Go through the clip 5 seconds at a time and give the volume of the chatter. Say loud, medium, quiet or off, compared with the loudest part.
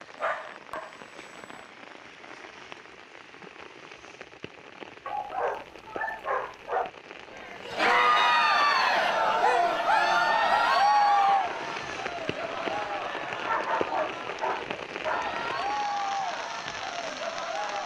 off, loud, loud, medium.